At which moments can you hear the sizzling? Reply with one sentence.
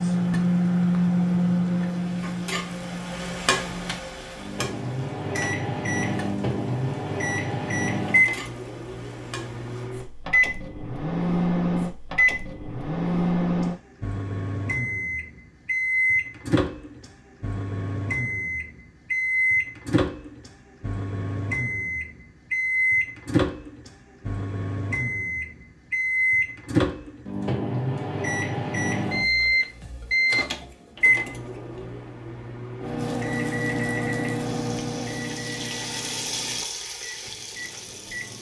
You can hear the sizzling from 0.0 to 9.9 s and from 33.0 to 38.3 s.